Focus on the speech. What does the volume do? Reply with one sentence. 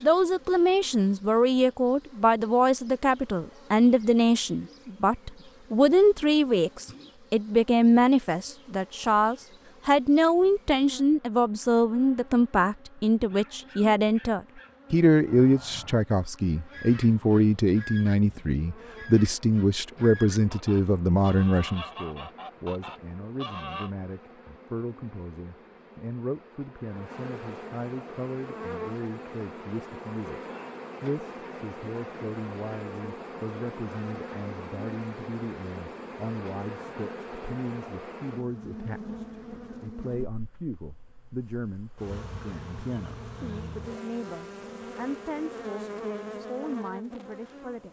The loudness of the speech goes down.